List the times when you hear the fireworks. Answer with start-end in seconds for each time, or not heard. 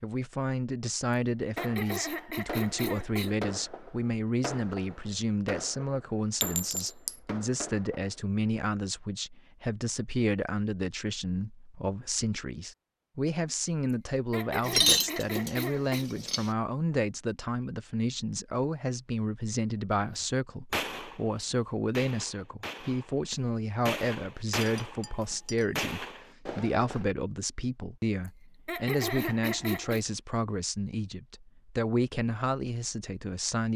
1.6-8.3, 20.1-27.1.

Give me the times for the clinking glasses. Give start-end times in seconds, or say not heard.
6.4-7.2, 14.7-16.5, 24.6-25.9.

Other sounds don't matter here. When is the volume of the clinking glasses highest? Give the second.
15 s.